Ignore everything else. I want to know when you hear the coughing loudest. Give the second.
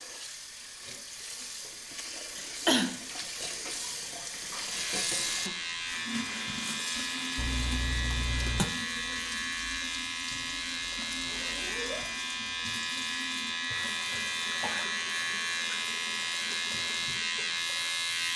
3 s.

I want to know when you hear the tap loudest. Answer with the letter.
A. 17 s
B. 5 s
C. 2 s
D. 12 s
B.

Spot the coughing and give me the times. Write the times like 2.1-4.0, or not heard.
2.4-3.0, 7.3-8.7, 13.7-14.9.